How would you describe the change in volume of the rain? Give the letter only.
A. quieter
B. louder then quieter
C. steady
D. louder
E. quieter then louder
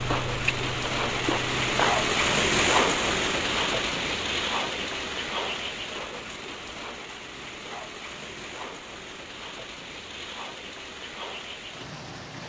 A.